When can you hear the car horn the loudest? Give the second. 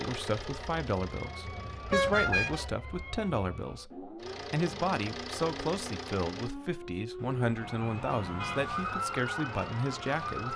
2 s.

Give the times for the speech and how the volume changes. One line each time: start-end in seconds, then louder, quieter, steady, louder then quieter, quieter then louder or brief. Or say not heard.
0.0-10.5 steady.